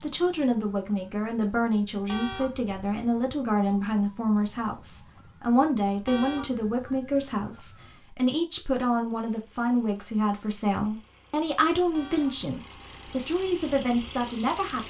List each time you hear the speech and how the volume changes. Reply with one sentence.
The speech can be heard from 0.0 to 14.8 s, at a steady volume.